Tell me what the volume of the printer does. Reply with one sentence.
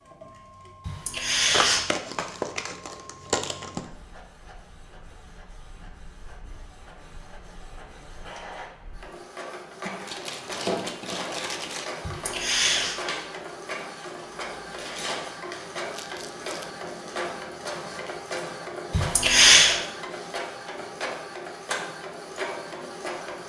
The volume of the printer goes up.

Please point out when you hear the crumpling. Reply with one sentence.
You can hear the crumpling from 1.5 to 3.9 s, from 9.8 to 11.8 s and from 15.9 to 16.7 s.